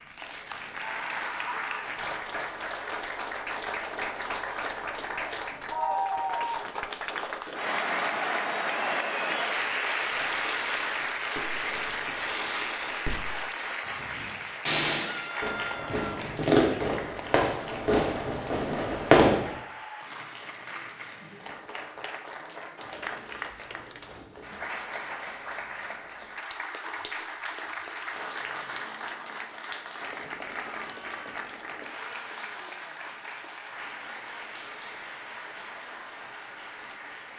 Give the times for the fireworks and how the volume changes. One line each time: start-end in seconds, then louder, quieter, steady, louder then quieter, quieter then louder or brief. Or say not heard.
10.1-19.5 louder.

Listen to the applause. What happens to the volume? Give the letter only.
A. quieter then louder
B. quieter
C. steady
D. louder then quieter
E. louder
B.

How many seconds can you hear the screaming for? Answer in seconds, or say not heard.
3 s.